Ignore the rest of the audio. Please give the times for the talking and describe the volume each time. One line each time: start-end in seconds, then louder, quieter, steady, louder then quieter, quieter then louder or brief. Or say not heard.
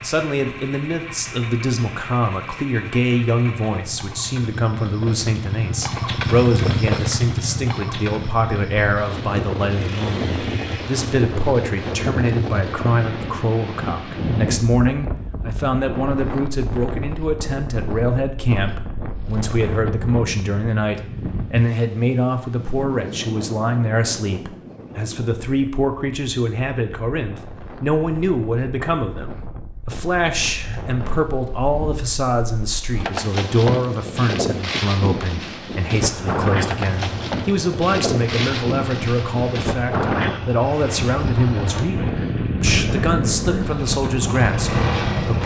0.0-45.4 steady.